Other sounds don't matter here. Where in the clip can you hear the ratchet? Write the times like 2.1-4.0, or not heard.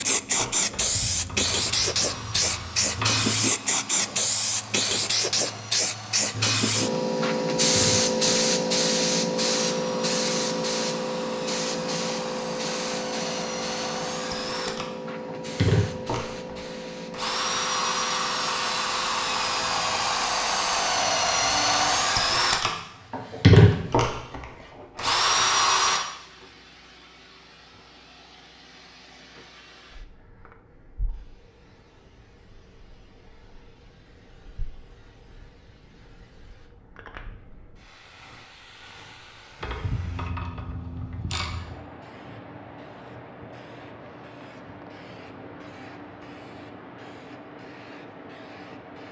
0.7-3.2, 39.6-41.9.